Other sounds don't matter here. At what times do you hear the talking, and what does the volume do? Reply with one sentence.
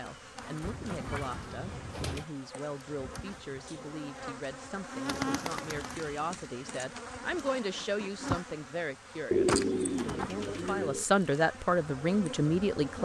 The talking can be heard from 0.0 to 13.0 s, getting louder.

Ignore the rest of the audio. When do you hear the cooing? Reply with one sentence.
The cooing can be heard from 0.6 to 2.2 s, from 5.0 to 6.3 s and from 9.3 to 11.1 s.